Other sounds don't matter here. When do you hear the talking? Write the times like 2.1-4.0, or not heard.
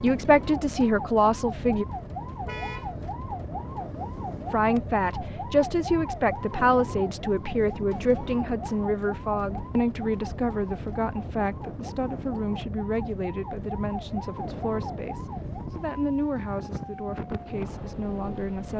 0.0-1.9, 4.5-18.7.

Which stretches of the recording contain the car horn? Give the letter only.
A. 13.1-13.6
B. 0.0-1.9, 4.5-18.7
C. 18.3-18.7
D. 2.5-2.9
D.